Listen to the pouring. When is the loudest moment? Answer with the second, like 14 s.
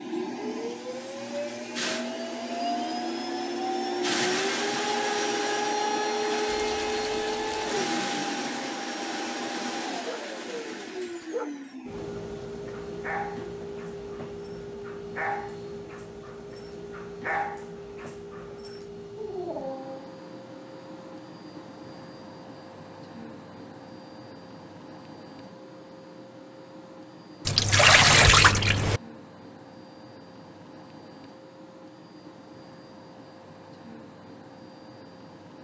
28 s.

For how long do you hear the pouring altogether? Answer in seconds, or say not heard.
3 s.